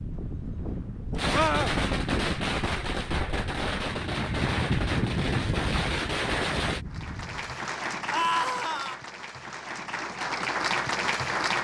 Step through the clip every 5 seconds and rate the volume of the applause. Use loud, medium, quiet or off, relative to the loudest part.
off, medium, loud.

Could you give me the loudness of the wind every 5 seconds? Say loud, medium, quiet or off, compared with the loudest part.
loud, loud, off.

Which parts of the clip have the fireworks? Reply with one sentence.
You can hear the fireworks from 1.1 to 6.8 s.